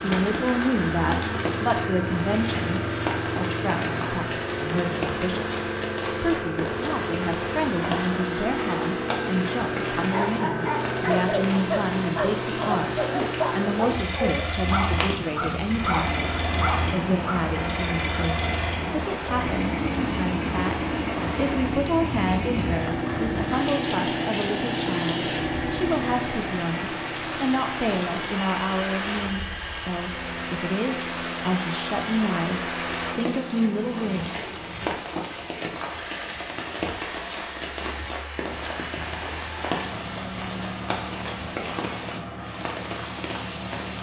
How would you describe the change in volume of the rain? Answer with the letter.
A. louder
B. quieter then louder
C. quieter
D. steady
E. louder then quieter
D.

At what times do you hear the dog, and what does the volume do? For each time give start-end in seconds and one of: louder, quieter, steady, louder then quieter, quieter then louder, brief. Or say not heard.
10.1-17.6 steady.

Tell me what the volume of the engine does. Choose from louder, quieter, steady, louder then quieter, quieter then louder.
quieter.